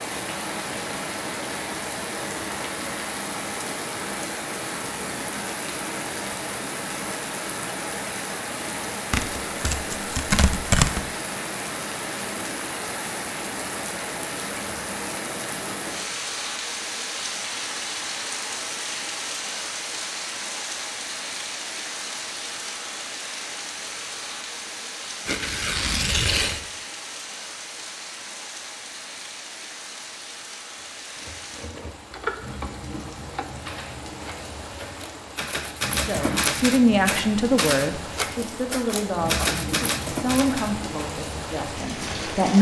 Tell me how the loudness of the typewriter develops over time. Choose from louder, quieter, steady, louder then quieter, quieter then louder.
quieter then louder.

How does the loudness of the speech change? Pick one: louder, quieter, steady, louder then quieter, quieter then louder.
quieter.